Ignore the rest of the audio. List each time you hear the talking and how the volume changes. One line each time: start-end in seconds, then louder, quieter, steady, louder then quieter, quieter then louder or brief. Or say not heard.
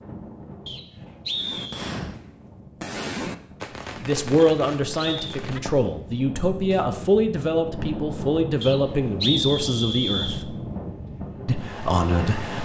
4.0-10.6 steady
11.4-12.5 brief.